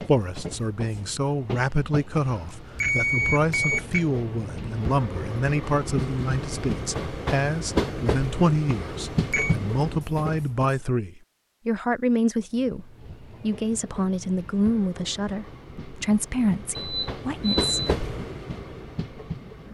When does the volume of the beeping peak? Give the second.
3 s.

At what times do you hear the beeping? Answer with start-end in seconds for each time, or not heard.
2.1-4.0, 8.7-9.6, 16.8-17.7.